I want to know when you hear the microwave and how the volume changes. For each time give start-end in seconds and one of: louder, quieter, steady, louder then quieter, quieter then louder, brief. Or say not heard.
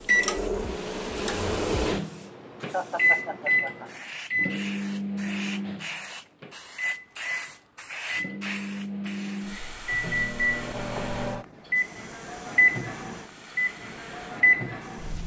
0.0-15.2 quieter then louder.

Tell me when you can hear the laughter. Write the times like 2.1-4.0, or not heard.
2.7-4.1.